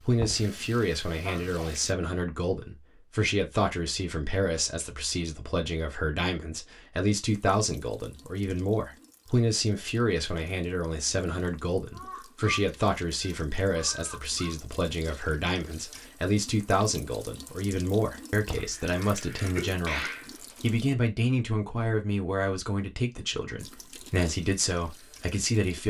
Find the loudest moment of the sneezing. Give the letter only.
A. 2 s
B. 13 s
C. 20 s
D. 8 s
C.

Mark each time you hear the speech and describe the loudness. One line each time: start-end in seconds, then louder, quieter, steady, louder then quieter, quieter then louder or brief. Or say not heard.
0.0-25.8 steady.